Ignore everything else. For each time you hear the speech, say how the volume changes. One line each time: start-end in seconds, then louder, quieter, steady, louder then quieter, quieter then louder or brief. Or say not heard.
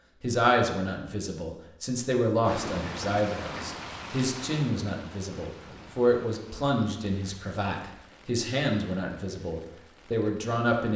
0.2-10.9 steady.